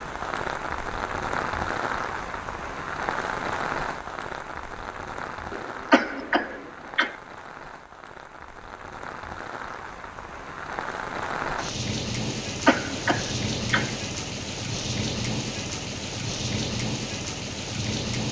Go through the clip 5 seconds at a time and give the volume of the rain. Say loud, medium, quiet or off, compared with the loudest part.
loud, medium, loud, loud.